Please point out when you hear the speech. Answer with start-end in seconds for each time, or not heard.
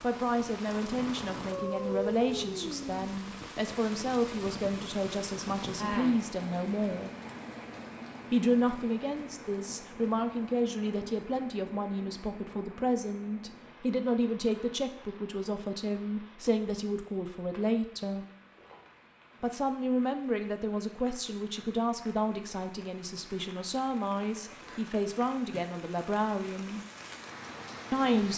0.0-7.2, 8.3-18.2, 19.4-26.9, 27.9-28.3.